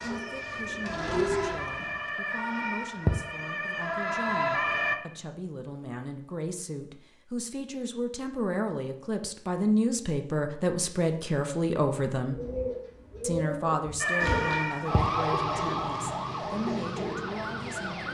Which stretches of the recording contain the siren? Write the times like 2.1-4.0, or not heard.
0.0-5.0, 14.0-18.0.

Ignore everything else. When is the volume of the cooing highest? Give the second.
1 s.